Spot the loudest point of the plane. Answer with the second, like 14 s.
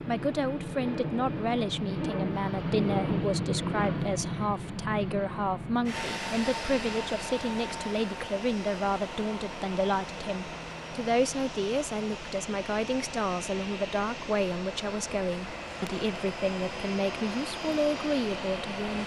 3 s.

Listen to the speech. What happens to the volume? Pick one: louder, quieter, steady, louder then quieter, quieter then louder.
steady.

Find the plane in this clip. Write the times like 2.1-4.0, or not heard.
0.0-19.0.